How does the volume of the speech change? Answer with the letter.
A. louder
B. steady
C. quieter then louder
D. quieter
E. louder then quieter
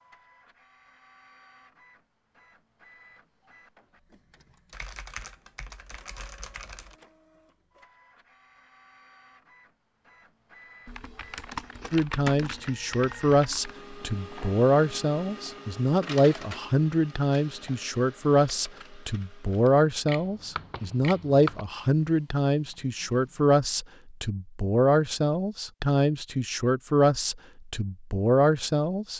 B.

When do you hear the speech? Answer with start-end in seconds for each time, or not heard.
11.9-29.1.